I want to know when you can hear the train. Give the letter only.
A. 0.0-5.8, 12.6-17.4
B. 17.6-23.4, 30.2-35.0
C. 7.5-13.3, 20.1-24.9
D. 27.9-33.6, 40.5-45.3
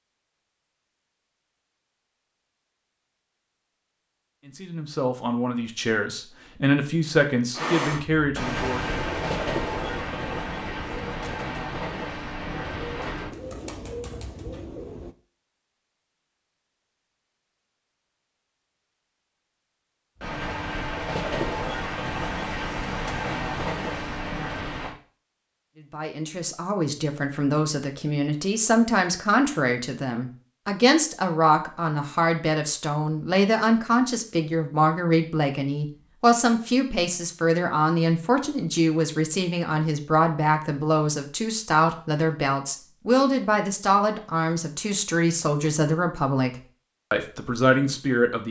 C.